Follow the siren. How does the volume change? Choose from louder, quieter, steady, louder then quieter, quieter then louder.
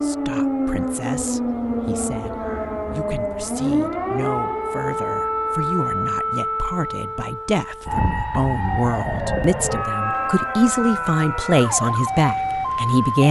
steady.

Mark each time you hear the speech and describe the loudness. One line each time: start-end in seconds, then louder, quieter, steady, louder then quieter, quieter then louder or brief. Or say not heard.
0.0-13.2 louder.